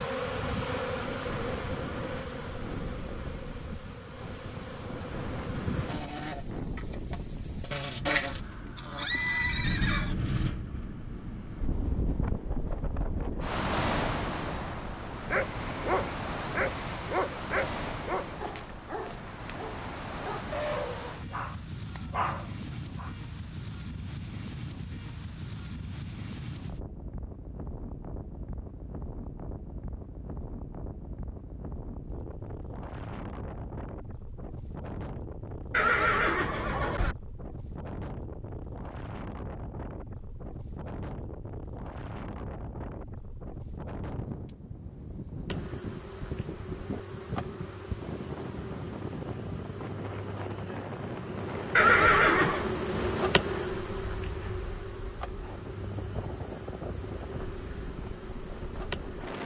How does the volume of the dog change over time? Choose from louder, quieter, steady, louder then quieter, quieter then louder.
quieter then louder.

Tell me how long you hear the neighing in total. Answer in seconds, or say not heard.
4 s.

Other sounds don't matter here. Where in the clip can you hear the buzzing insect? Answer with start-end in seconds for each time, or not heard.
0.0-9.1, 45.5-59.4.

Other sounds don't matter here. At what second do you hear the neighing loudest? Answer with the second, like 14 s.
52 s.